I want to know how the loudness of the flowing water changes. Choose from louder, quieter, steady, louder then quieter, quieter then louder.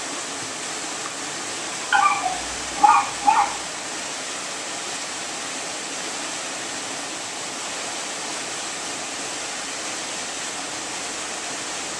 steady.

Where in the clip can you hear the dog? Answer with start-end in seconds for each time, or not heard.
1.9-3.5.